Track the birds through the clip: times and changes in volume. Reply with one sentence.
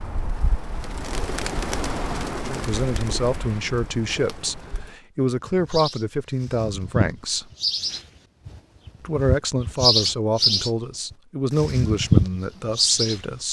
You can hear the birds from 0.0 to 13.2 s, getting quieter then louder.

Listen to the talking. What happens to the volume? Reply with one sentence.
The loudness of the talking stays about the same.